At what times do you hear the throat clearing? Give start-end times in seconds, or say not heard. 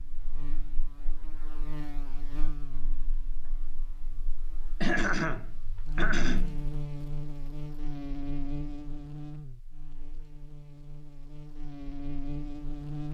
4.8-6.7.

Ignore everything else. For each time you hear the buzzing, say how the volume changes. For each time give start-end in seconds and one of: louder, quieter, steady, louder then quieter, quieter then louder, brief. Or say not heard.
0.0-13.0 quieter then louder.